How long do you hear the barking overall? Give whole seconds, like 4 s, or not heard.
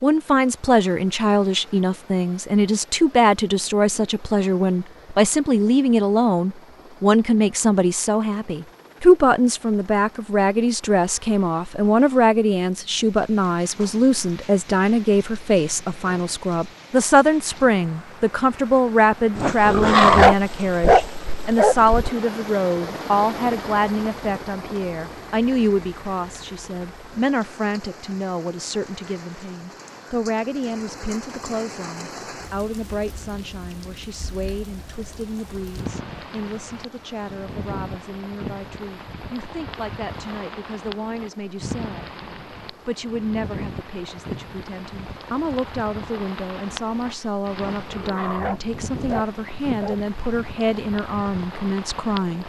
5 s.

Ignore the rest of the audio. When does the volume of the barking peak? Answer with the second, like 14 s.
20 s.